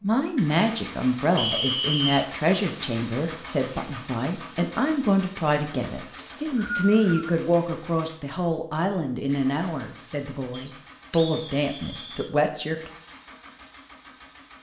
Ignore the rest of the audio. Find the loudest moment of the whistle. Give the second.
2 s.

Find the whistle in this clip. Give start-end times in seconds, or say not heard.
1.4-2.3, 6.2-7.3, 10.5-12.3.